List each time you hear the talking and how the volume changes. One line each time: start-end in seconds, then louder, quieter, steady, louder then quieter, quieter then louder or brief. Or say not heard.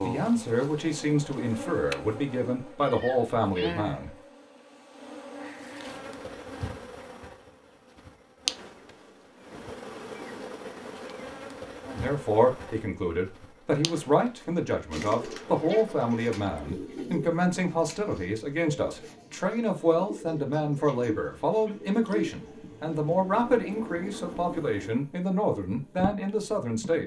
0.0-4.1 steady
11.8-27.0 steady.